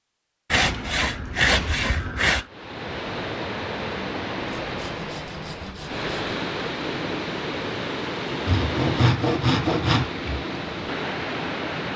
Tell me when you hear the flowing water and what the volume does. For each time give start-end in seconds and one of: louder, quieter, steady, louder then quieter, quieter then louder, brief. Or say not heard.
2.5-11.9 steady.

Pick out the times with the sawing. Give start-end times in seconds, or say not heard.
0.5-2.5, 4.6-6.3, 8.4-10.4.